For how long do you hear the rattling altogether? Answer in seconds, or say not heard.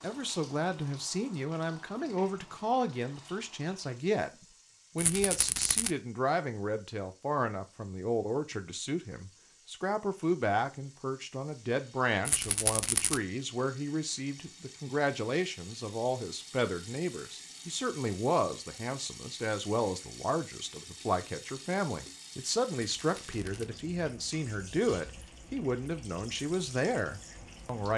3 s.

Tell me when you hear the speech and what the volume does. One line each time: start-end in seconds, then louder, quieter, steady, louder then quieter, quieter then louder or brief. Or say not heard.
0.0-27.9 steady.